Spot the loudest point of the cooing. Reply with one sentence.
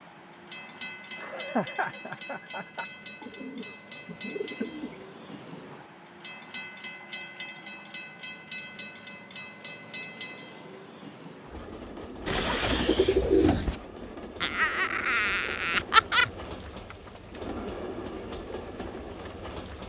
The loudest moment of the cooing is at 13 seconds.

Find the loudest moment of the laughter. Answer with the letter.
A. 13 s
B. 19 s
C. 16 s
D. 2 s
C.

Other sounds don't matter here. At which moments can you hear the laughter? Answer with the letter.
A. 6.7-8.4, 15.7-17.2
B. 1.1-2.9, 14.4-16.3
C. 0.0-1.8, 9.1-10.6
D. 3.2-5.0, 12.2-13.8
B.